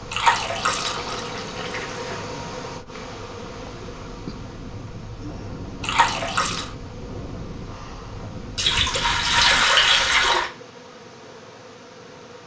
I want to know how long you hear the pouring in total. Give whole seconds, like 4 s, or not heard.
5 s.